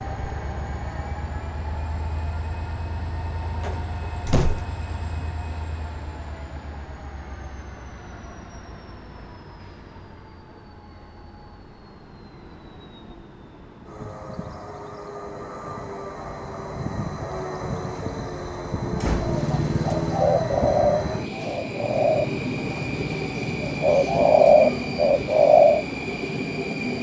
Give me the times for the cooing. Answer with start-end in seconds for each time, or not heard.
19.2-25.9.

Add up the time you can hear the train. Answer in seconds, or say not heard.
27 s.